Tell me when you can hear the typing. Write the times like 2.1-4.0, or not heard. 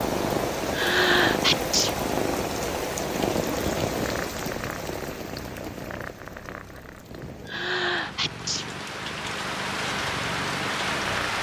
not heard.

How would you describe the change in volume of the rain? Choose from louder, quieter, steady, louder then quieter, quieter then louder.
quieter then louder.